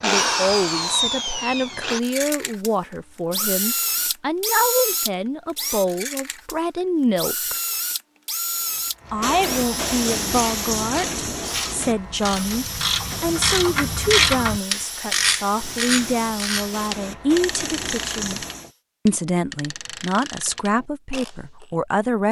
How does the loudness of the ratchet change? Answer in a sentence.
The loudness of the ratchet goes up, then down.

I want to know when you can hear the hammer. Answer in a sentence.
The hammer can't be heard in this clip.